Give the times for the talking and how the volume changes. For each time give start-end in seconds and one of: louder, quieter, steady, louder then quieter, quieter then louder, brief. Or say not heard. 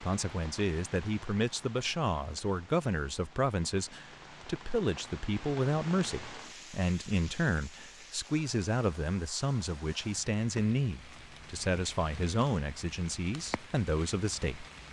0.0-14.7 steady.